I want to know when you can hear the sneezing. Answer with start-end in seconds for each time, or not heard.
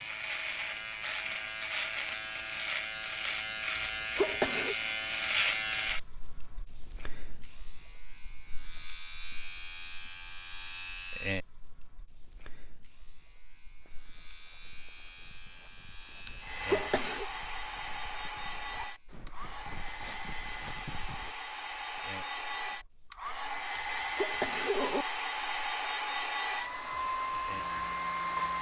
3.8-4.8, 16.2-17.2, 23.8-25.1.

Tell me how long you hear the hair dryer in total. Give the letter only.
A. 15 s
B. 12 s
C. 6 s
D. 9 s
B.